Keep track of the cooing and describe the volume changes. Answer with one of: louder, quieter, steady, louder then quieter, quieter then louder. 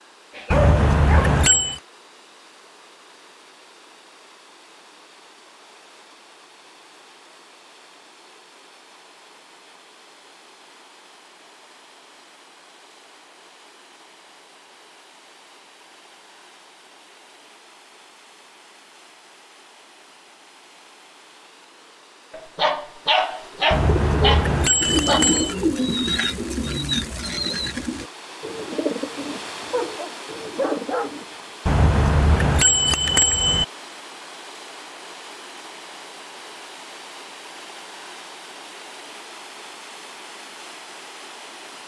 quieter.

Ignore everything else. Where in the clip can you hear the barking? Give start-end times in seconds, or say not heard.
0.3-1.8, 22.4-25.2, 29.7-31.1.